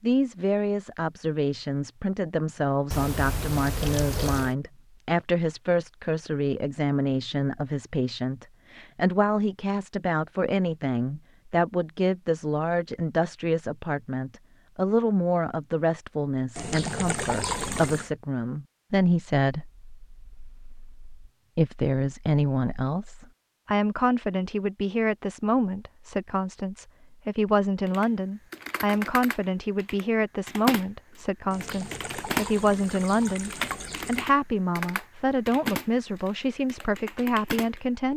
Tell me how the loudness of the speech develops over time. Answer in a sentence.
The volume of the speech stays about the same.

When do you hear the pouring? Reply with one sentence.
You can hear the pouring from 2.9 to 4.5 s, from 16.6 to 18.1 s and from 31.5 to 34.3 s.